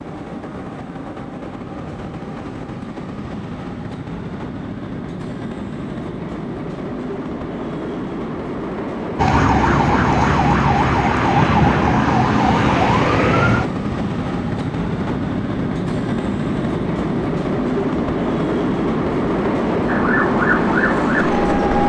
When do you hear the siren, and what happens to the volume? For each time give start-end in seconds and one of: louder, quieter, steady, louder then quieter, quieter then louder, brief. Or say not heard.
9.2-13.7 steady
19.9-21.8 brief.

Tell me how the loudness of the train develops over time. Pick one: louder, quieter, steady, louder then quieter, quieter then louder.
louder.